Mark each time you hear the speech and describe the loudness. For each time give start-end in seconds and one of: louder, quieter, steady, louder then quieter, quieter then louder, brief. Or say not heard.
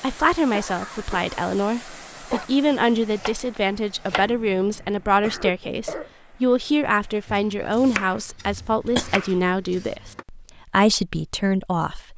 0.0-12.1 steady.